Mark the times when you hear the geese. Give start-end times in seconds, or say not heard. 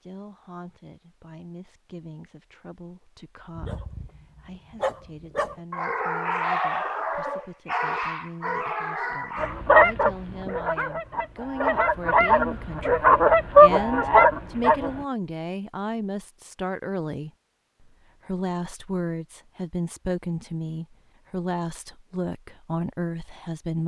9.3-15.0.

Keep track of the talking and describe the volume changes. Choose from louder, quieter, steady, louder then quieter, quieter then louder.
louder.